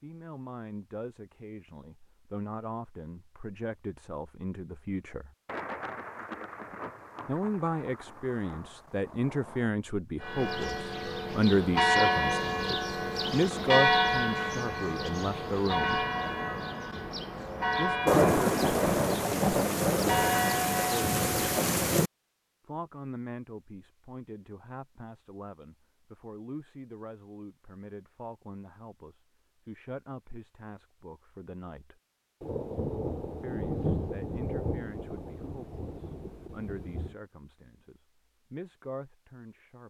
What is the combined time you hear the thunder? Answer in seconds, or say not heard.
13 s.